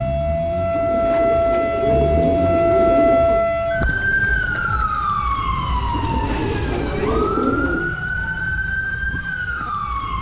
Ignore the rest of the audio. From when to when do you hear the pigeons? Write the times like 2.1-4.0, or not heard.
0.7-3.5, 5.9-8.0.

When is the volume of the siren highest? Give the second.
3 s.